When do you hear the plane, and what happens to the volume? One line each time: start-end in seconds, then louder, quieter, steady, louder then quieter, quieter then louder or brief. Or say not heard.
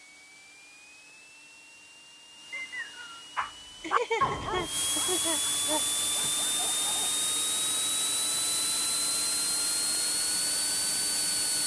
0.0-11.6 louder.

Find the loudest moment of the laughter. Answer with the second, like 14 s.
4 s.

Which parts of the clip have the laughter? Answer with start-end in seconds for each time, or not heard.
3.8-6.3.